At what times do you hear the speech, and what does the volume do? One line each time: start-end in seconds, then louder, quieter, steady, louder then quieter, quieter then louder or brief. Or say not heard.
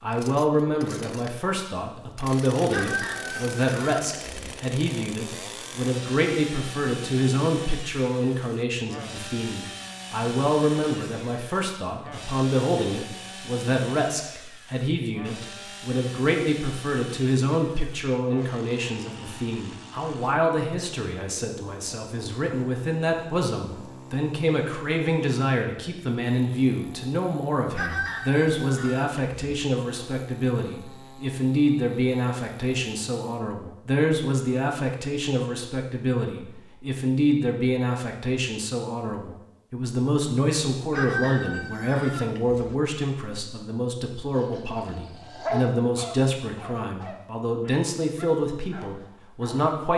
0.0-49.9 steady.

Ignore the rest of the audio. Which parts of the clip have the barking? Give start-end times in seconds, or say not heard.
44.3-49.8.